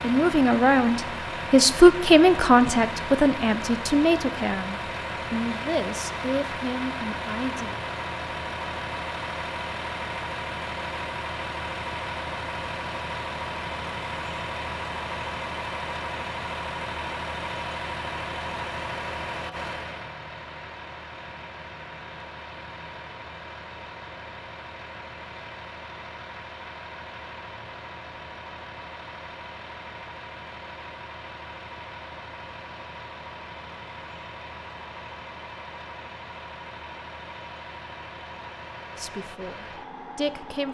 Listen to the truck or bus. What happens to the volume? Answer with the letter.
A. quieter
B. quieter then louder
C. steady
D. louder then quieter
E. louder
A.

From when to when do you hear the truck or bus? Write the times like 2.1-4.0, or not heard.
0.0-40.6.